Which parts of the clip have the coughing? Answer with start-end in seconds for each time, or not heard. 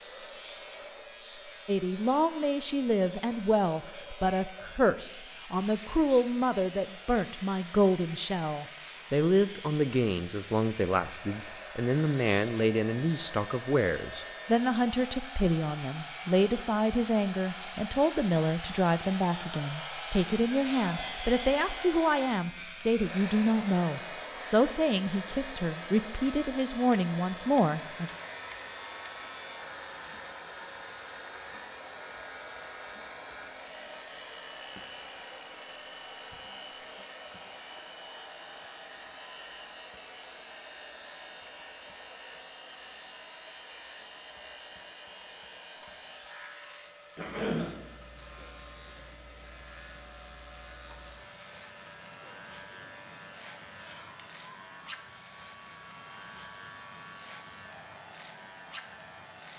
47.1-47.7.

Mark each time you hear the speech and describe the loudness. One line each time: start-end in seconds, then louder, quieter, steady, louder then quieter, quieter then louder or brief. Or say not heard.
1.6-28.1 steady.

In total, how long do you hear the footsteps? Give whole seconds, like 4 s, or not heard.
not heard.